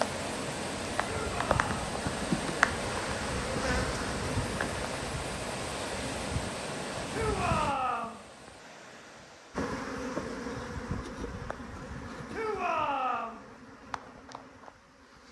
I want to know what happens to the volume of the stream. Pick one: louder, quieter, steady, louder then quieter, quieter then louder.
quieter.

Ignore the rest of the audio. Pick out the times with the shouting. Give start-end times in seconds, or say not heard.
1.1-1.9, 7.1-8.2, 12.3-13.4.